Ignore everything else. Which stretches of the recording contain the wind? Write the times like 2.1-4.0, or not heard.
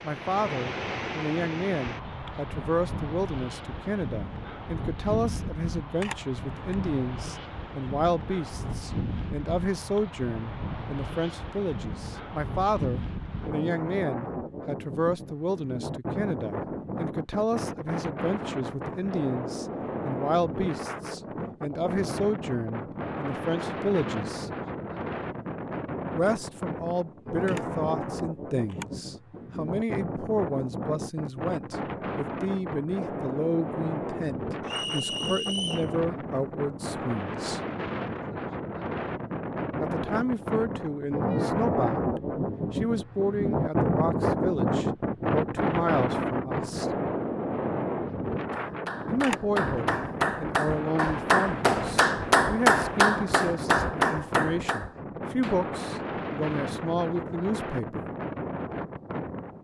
0.0-59.5.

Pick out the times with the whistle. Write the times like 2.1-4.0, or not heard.
34.6-35.9.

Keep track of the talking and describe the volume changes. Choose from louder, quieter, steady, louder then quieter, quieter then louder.
steady.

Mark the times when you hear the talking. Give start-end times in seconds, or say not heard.
0.0-24.5, 26.1-37.6, 39.8-46.9, 49.0-58.0.